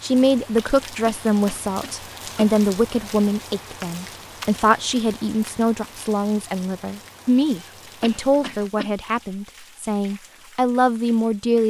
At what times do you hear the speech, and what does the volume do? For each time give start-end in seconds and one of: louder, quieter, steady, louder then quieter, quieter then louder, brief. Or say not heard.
0.0-11.6 steady.